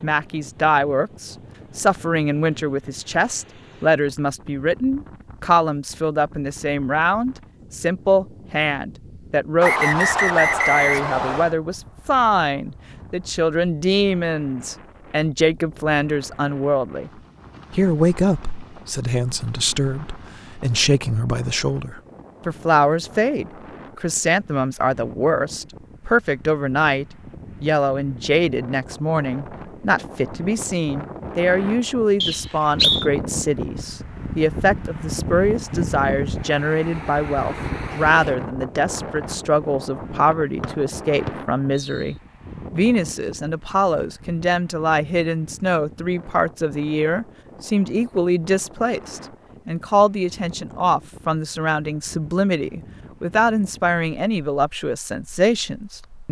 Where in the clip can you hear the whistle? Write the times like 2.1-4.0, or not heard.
9.6-11.6, 32.2-33.1, 40.6-42.1.